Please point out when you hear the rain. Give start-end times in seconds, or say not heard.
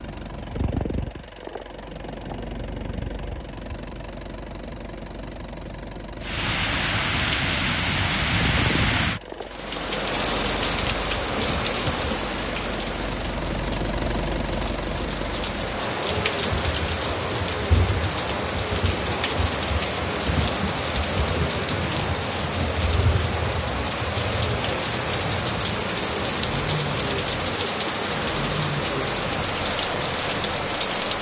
6.2-31.1.